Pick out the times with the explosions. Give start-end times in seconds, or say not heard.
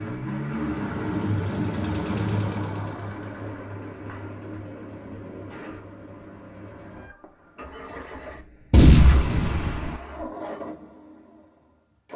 8.7-9.9.